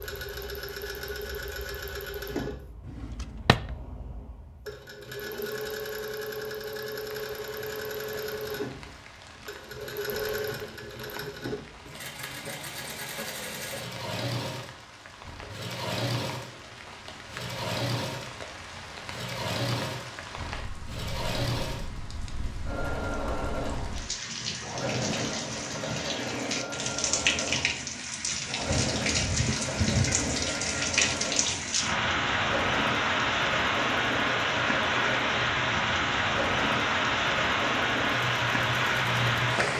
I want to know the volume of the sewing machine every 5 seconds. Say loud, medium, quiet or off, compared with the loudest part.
medium, loud, loud, loud, loud, loud, loud, loud.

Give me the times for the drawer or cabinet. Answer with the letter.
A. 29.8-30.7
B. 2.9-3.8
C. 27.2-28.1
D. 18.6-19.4
B.